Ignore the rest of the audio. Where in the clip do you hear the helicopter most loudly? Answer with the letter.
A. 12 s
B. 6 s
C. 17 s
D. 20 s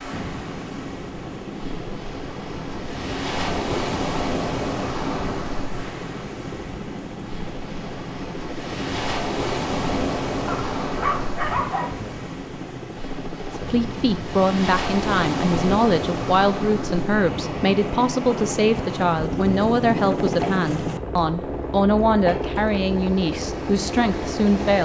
D.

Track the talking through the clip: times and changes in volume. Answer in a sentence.
You can hear the talking from 13.7 to 24.7 s, at a steady volume.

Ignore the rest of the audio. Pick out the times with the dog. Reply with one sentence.
You can hear the dog from 10.4 to 11.9 s.